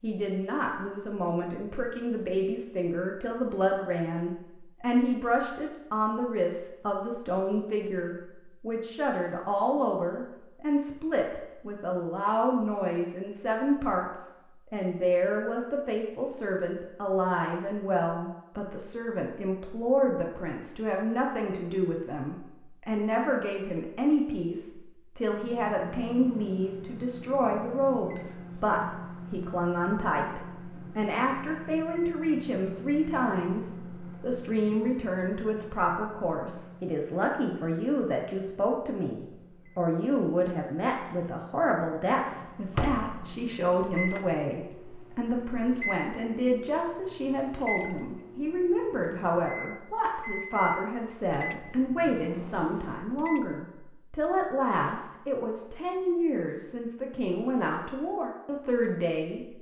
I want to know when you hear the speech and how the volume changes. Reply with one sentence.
You can hear the speech from 0.0 to 59.5 s, at a steady volume.